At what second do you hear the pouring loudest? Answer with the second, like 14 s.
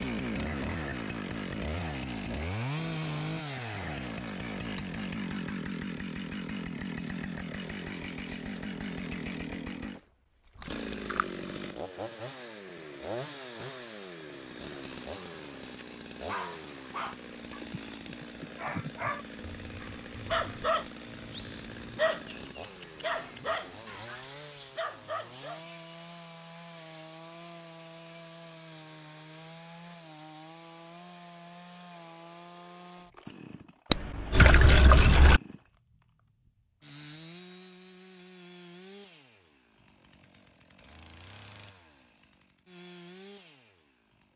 35 s.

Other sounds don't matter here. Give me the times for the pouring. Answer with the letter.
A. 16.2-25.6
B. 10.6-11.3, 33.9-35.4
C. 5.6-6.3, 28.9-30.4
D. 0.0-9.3
B.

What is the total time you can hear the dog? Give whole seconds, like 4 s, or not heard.
9 s.